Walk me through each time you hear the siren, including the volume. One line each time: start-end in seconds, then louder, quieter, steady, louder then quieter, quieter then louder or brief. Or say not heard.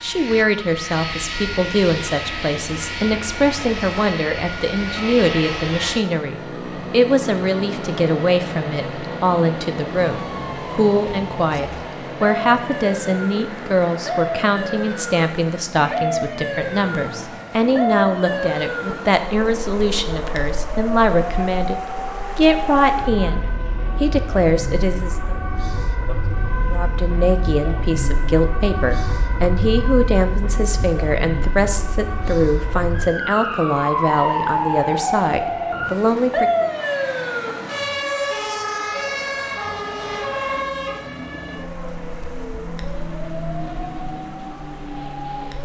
0.0-45.6 louder.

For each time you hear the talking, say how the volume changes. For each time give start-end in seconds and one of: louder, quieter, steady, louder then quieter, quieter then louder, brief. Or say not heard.
0.0-25.4 steady
26.7-36.7 steady.